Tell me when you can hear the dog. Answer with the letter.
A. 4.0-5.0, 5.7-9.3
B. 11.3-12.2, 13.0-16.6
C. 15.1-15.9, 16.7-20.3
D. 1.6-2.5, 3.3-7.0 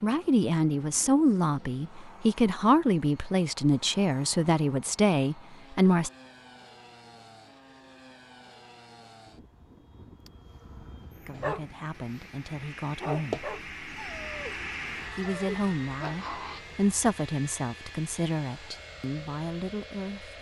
B.